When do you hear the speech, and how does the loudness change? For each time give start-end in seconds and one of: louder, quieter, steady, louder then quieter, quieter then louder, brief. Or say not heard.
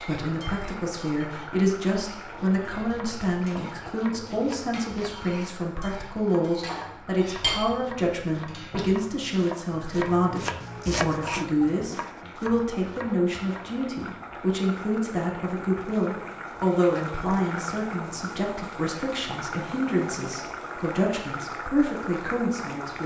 0.0-23.0 steady.